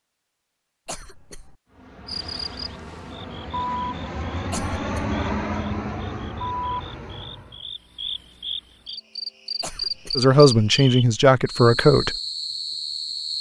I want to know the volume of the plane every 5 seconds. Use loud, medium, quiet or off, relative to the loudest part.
loud, loud, off.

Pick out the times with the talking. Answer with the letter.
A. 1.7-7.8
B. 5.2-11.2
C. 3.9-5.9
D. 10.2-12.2
D.